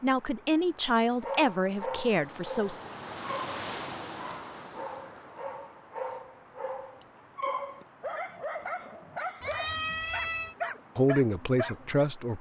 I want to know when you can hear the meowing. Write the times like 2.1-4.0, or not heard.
9.4-10.6.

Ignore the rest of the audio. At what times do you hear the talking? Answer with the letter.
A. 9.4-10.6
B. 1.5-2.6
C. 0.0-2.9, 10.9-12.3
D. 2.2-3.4
C.